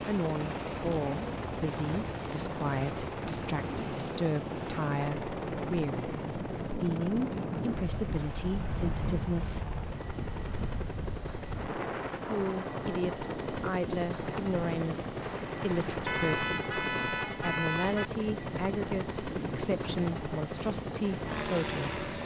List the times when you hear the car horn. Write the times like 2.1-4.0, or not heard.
16.1-18.1.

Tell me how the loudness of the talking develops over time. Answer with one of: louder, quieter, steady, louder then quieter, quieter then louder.
steady.